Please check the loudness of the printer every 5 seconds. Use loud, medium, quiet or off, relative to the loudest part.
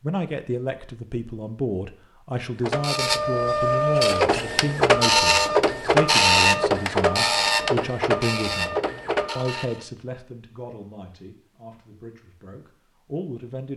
loud, loud, off.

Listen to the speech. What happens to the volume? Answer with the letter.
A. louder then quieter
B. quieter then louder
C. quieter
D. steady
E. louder
C.